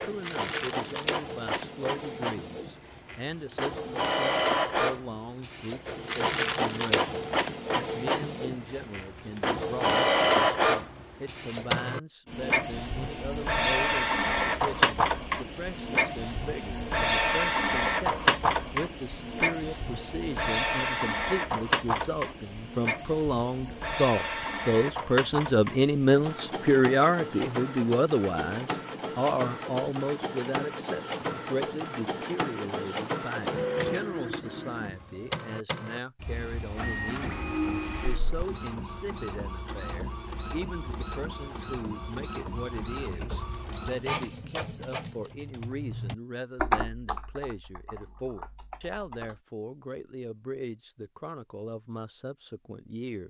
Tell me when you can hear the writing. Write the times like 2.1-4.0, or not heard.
not heard.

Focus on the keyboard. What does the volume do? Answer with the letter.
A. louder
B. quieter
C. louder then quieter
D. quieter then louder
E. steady
C.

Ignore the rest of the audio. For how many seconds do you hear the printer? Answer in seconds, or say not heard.
45 s.